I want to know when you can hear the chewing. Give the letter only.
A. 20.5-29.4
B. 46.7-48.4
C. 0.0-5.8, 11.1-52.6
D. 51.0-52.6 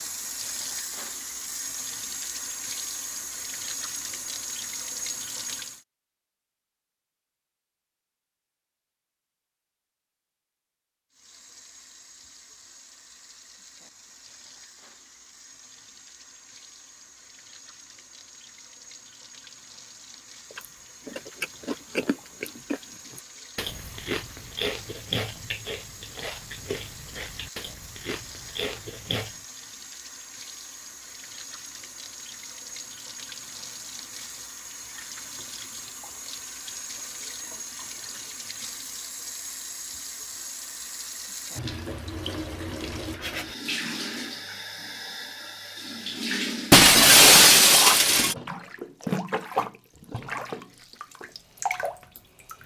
A.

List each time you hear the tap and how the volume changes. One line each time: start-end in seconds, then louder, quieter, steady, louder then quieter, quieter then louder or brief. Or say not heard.
0.0-5.8 steady
11.1-52.6 louder.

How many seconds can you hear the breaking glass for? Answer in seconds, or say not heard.
2 s.